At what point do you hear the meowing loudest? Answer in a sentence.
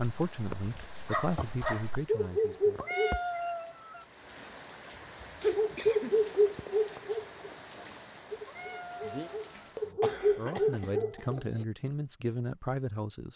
The volume of the meowing peaks at 3 seconds.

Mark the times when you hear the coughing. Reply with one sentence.
You can hear the coughing from 1.4 to 2.0 s, from 5.4 to 6.2 s and from 9.6 to 11.4 s.